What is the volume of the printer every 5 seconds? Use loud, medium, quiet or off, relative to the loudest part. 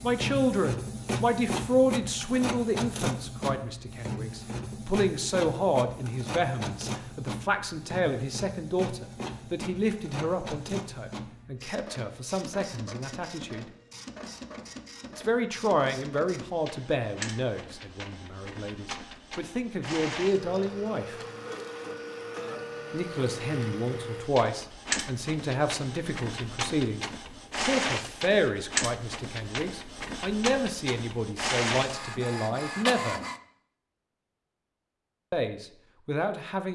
loud, medium, medium, medium, loud, loud, loud, off.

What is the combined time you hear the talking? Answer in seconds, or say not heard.
31 s.